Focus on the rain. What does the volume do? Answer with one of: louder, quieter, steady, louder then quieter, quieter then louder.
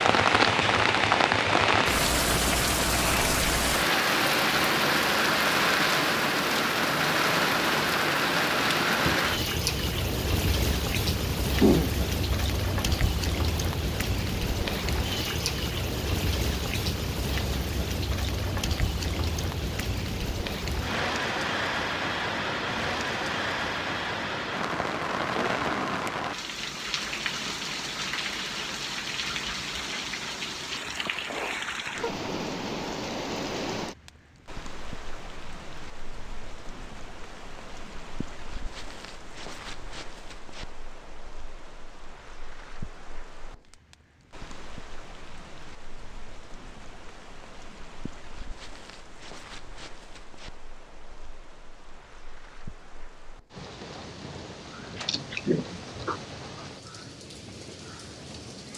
quieter.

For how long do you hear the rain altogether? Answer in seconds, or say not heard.
59 s.